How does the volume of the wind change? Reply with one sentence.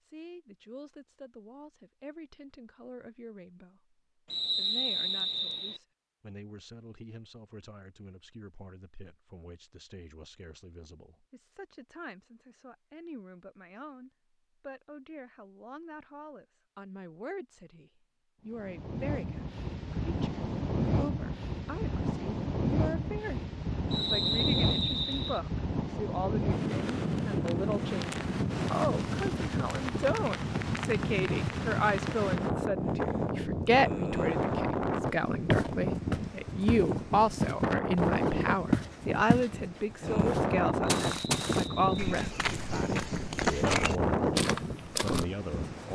The loudness of the wind stays about the same.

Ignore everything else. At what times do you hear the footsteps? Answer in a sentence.
The footsteps can be heard from 35.0 to 45.2 s.